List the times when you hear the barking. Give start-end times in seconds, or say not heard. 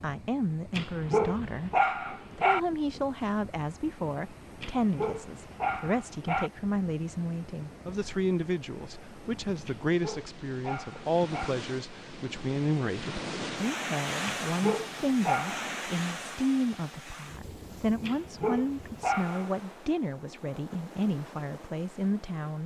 0.8-2.6, 4.6-6.5, 9.7-11.6, 14.2-15.7, 18.1-19.5.